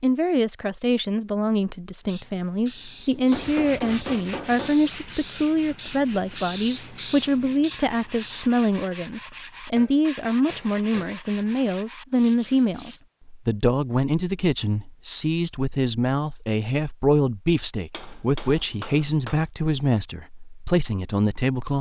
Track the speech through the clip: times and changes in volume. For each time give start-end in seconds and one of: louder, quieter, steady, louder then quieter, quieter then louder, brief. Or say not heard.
0.0-21.7 steady.